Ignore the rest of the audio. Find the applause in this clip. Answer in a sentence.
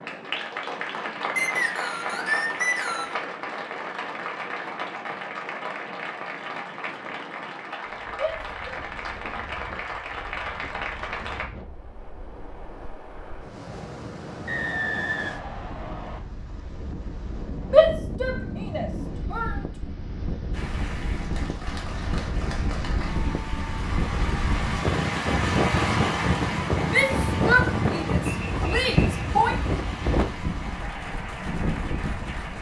You can hear the applause from 0.0 to 11.4 s and from 20.5 to 32.5 s.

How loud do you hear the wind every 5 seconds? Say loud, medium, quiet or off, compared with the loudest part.
quiet, quiet, quiet, medium, medium, loud, medium.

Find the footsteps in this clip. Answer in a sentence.
You can't hear the footsteps here.